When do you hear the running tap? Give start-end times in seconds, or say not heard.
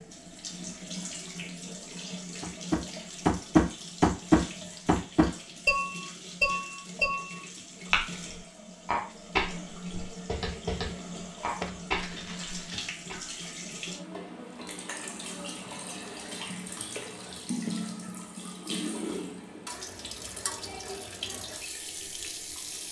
0.0-22.8.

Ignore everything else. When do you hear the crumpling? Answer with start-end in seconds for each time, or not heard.
11.6-12.9.